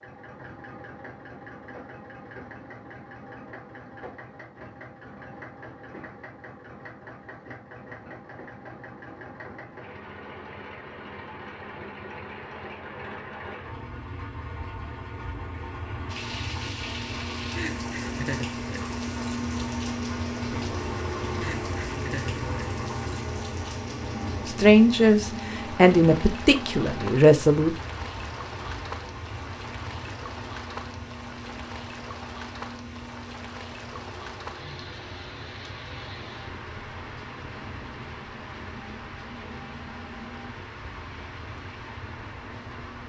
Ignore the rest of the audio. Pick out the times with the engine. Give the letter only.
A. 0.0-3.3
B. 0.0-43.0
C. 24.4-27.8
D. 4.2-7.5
B.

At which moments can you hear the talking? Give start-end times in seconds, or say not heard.
24.4-27.8.